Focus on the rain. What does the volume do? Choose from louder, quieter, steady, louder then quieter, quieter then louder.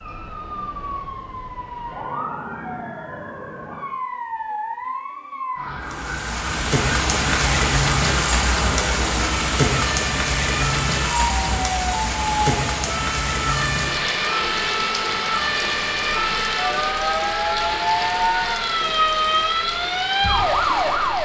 quieter.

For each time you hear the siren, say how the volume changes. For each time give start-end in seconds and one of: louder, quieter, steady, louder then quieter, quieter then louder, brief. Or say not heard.
0.0-21.1 louder.